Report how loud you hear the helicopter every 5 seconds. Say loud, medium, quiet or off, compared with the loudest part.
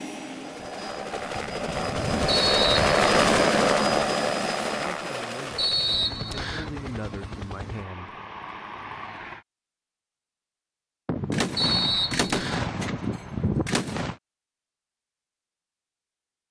loud, quiet, off, off.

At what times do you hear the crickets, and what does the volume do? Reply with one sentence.
You can't hear the crickets here.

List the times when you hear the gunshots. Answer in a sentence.
The gunshots can be heard from 11.1 to 14.2 s.